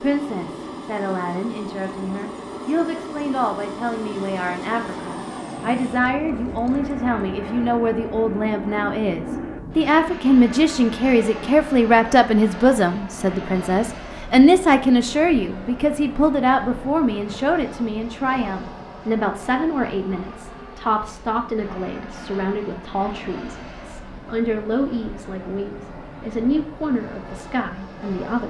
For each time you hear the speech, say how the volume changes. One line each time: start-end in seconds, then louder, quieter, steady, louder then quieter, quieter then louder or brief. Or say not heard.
0.0-28.4 louder then quieter.